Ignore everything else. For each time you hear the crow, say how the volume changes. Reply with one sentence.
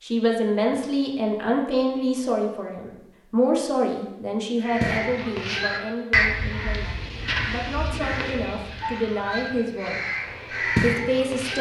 The crow can be heard from 4.6 to 11.5 s, getting quieter then louder.